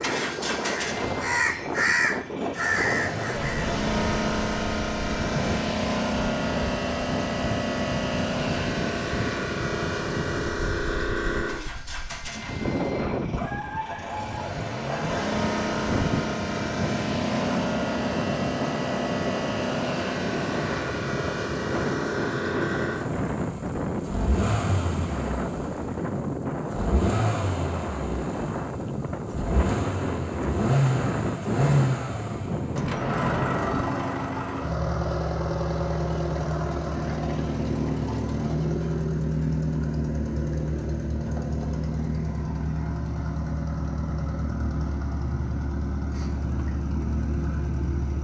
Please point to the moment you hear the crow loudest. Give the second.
2 s.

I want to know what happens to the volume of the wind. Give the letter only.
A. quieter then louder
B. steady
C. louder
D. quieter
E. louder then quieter
B.